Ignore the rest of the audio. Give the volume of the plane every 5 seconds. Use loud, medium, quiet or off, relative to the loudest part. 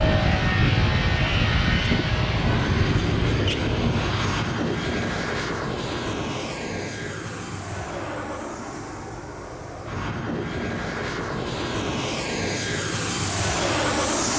loud, medium, loud.